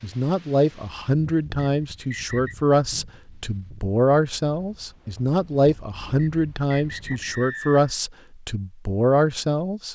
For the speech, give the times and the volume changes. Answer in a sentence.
You can hear the speech from 0.0 to 9.9 s, at a steady volume.